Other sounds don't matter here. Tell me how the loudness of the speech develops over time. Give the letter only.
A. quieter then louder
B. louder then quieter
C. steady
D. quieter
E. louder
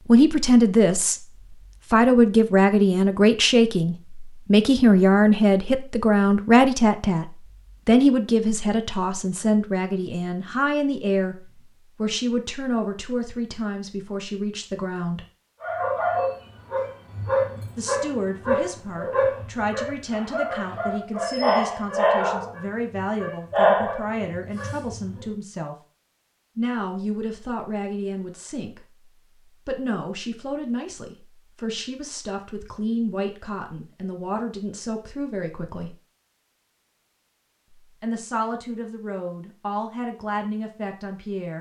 D.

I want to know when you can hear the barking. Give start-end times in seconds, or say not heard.
15.6-25.2.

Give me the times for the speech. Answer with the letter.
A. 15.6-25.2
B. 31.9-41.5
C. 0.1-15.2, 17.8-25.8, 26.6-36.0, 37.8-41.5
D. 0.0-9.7
C.